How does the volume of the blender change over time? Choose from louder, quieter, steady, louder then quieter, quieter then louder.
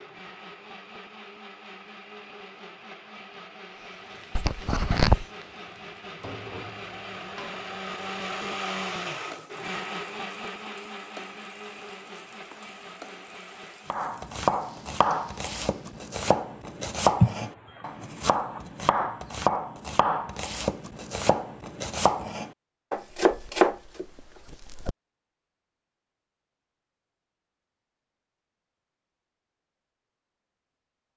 louder then quieter.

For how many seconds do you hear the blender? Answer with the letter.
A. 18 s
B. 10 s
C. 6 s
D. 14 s
D.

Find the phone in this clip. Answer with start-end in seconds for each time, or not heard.
not heard.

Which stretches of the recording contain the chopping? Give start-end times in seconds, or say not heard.
13.9-24.9.